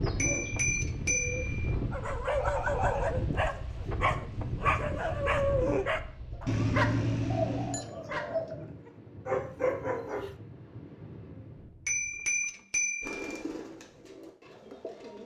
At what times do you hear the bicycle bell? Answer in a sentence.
The bicycle bell can be heard from 0.1 to 1.8 s, from 6.5 to 7.8 s and from 11.8 to 13.2 s.